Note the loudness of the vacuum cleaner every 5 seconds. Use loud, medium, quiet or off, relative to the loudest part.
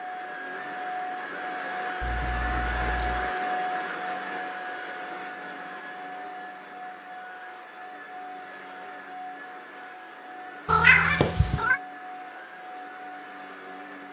loud, medium, medium.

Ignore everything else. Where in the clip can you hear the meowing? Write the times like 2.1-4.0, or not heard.
2.0-3.2, 10.7-11.8.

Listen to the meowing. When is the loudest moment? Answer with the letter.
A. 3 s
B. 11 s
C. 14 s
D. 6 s
B.